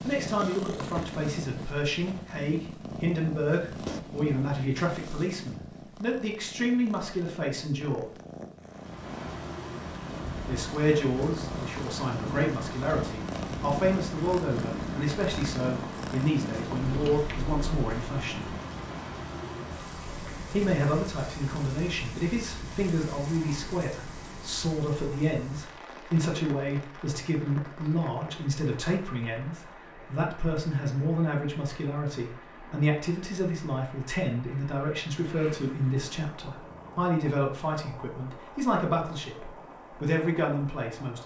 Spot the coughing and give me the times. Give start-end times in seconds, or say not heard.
not heard.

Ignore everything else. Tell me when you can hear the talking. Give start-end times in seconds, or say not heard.
0.1-8.1, 10.4-18.5, 20.5-41.2.